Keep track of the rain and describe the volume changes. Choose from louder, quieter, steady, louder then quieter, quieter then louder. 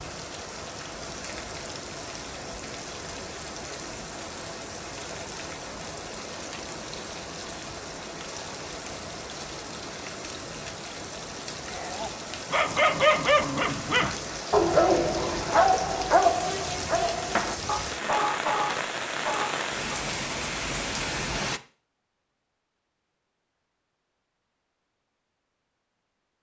louder.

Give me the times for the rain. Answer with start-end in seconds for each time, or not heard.
0.0-21.6.